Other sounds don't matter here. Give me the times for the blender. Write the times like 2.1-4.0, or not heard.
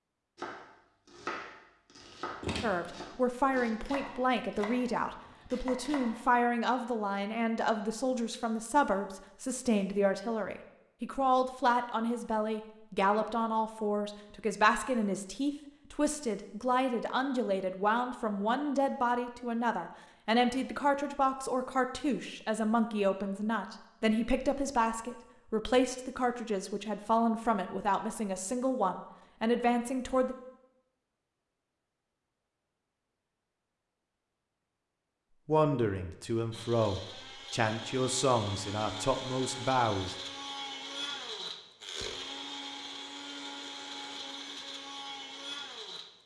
36.5-46.2.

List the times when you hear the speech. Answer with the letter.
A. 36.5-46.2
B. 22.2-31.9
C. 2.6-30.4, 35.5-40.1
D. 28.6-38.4
C.